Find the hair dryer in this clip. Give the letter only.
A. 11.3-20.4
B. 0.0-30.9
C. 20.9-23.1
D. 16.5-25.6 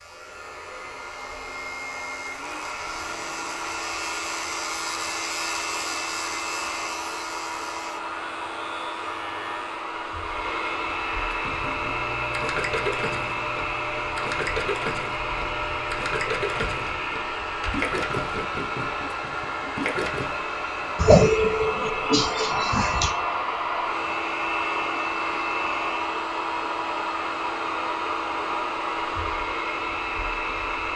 B.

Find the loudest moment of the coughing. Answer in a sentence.
The loudest moment of the coughing is at 21 seconds.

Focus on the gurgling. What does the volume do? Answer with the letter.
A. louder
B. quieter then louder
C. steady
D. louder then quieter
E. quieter
C.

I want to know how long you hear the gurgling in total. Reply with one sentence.
The gurgling can be heard for 9 seconds in total.